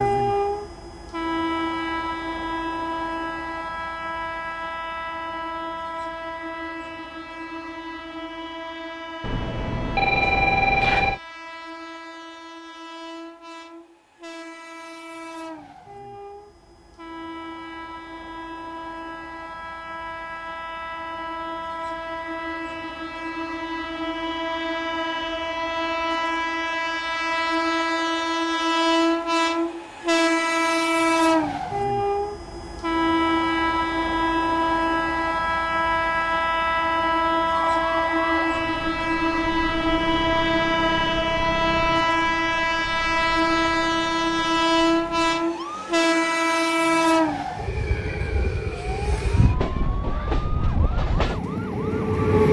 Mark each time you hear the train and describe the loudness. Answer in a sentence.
The train can be heard from 0.0 to 52.4 s, getting quieter then louder.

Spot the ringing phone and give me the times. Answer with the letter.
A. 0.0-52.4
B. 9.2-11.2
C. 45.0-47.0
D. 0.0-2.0
B.